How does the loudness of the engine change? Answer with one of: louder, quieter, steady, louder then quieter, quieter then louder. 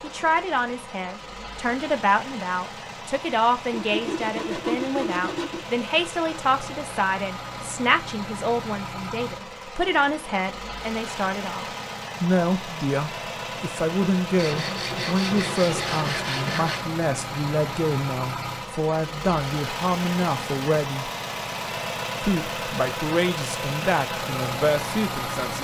louder.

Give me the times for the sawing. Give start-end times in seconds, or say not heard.
3.7-5.7, 14.3-16.9.